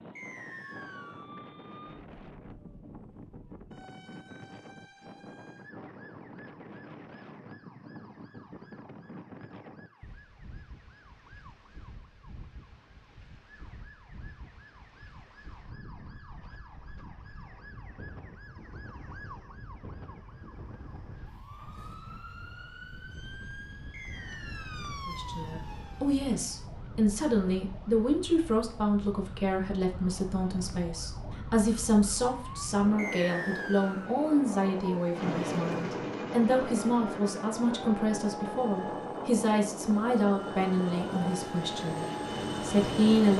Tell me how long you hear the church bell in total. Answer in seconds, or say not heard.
not heard.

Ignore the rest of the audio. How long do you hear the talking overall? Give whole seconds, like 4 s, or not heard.
18 s.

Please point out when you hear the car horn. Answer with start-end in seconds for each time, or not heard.
not heard.